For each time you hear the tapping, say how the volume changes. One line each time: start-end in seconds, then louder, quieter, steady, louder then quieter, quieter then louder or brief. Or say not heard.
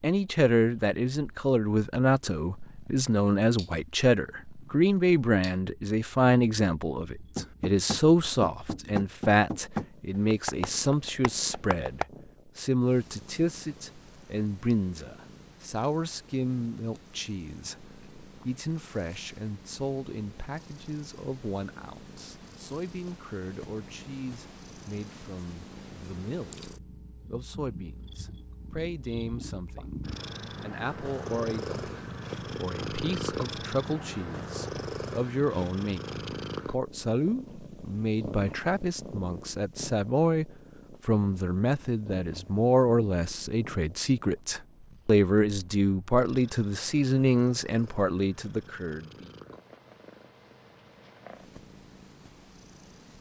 7.3-12.1 quieter.